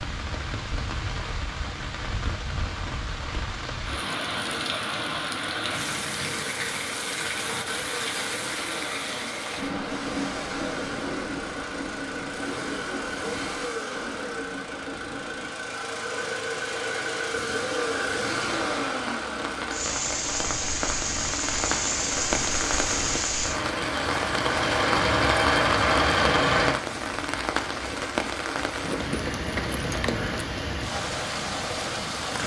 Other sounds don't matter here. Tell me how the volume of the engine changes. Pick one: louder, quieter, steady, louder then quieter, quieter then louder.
louder.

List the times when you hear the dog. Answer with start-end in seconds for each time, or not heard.
not heard.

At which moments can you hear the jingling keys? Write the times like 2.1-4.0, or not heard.
10.7-11.4, 28.8-30.4.